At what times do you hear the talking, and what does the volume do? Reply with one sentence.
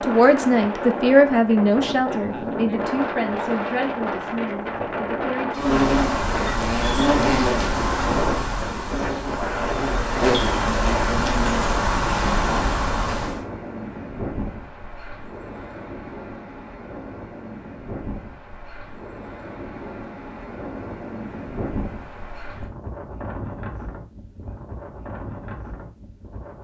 You can hear the talking from 0.0 to 5.8 s, getting quieter.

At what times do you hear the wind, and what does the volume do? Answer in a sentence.
The wind can be heard from 0.0 to 26.5 s, getting quieter.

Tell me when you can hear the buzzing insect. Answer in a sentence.
You can hear the buzzing insect from 5.5 to 13.4 s.